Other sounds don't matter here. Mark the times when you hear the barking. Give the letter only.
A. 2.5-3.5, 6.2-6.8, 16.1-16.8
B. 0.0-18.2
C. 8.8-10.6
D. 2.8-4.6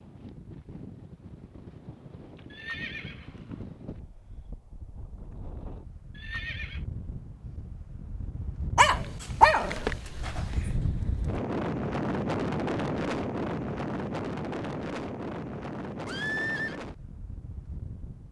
C.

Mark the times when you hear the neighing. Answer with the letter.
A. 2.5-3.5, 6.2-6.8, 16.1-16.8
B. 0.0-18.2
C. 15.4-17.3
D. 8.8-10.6
A.